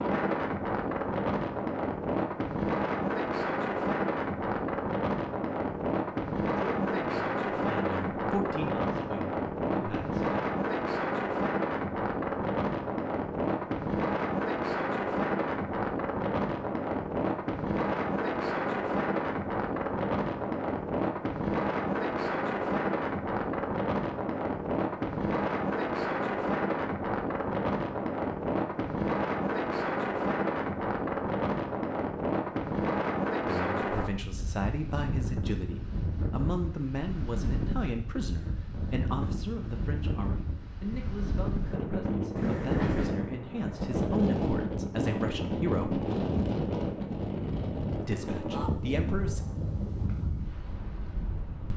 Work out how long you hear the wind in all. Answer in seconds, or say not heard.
52 s.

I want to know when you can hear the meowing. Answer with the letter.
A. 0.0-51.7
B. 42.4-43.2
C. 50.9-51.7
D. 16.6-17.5
B.